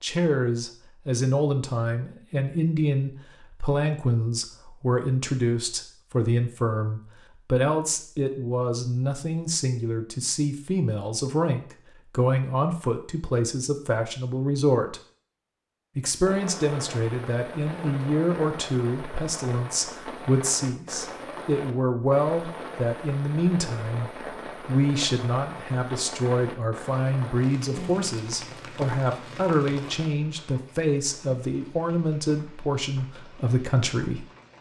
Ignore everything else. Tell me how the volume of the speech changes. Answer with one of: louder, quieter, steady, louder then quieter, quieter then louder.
steady.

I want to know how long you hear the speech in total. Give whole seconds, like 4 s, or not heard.
33 s.